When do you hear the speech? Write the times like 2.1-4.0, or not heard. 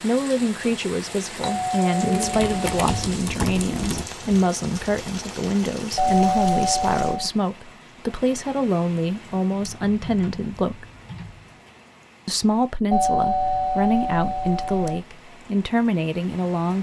0.0-10.8, 12.2-16.7.